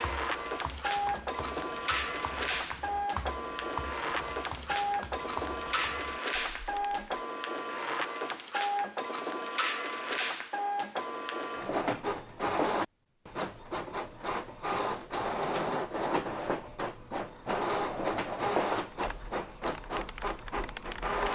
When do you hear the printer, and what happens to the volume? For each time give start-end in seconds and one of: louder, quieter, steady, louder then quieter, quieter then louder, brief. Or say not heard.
0.0-21.3 steady.